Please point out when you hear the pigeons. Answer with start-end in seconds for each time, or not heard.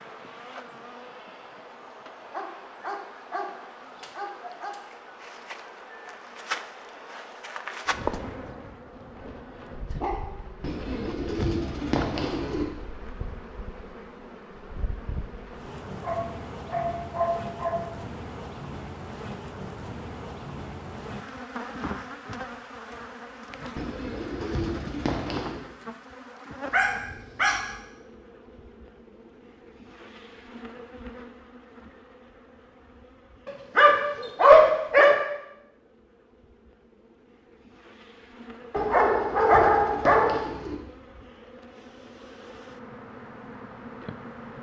10.6-12.7, 23.8-25.6, 38.8-40.8.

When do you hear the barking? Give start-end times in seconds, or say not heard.
2.3-4.8, 9.2-10.5, 16.0-17.9, 26.7-27.6, 33.5-35.1, 38.7-40.5.